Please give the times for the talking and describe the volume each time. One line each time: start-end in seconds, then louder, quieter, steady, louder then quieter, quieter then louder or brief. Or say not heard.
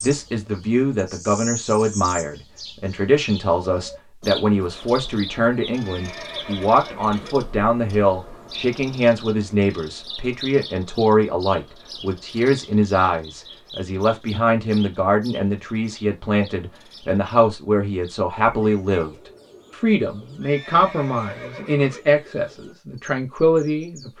0.0-24.1 steady.